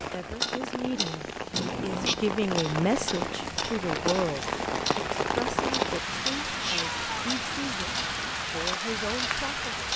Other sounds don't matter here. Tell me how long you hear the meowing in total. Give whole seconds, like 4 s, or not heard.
3 s.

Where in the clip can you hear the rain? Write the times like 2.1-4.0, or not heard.
0.0-9.9.